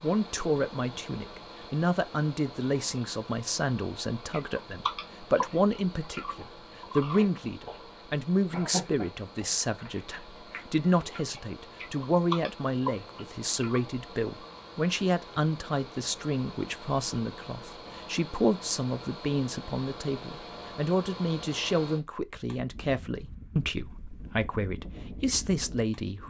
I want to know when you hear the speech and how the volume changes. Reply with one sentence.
You can hear the speech from 0.0 to 26.2 s, at a steady volume.